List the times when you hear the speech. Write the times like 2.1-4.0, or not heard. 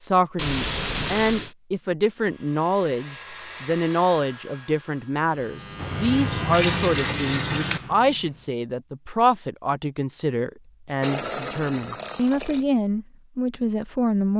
0.0-14.3.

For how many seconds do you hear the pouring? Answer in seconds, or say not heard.
5 s.